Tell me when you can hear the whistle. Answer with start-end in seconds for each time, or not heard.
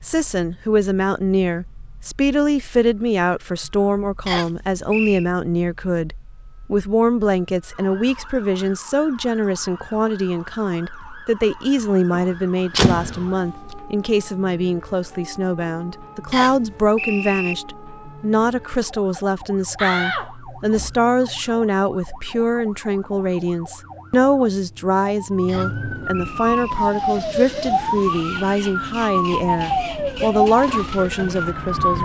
4.2-5.2, 16.3-17.6, 25.4-26.6.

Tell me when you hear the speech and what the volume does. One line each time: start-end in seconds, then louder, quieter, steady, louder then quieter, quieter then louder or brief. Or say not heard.
0.0-31.9 steady.